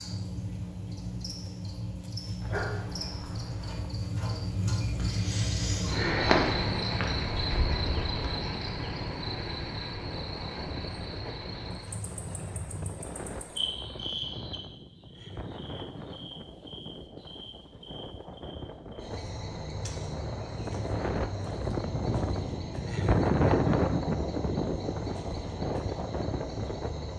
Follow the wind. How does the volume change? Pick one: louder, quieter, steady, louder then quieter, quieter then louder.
louder.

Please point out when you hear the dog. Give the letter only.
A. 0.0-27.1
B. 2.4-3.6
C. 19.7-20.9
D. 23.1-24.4
B.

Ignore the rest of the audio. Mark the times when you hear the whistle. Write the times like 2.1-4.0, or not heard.
not heard.